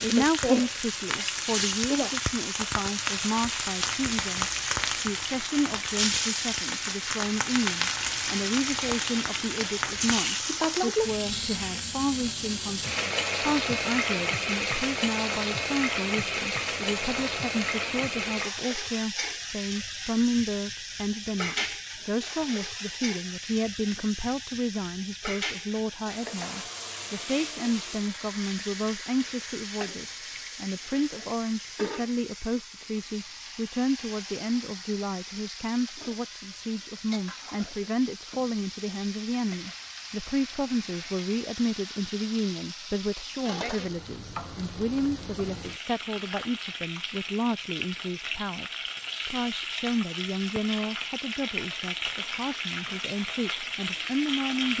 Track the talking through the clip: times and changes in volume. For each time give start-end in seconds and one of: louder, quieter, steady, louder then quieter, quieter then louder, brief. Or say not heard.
0.0-54.7 steady.